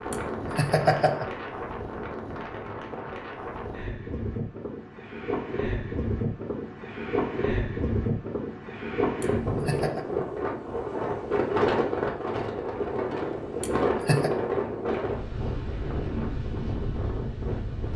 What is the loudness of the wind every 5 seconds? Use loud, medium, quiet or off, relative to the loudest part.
medium, loud, loud, medium.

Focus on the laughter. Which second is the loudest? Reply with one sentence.
The loudest moment of the laughter is at 1 second.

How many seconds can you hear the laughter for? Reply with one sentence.
You can hear the laughter for 3 seconds altogether.